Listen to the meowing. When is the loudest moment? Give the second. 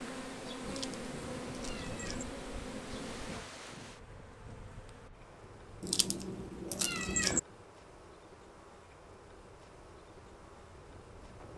7 s.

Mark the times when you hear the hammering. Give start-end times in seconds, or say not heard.
not heard.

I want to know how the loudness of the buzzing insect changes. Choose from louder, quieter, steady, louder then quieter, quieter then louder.
quieter.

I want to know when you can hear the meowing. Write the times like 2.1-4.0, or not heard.
0.7-2.2, 5.8-7.4.